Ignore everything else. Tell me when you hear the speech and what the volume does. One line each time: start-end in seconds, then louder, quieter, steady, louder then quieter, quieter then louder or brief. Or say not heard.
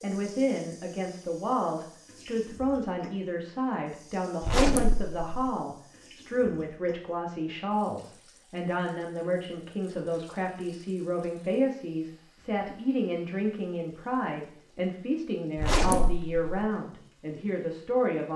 0.0-18.3 steady.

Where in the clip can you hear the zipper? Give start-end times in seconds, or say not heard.
4.4-5.5, 15.6-16.6.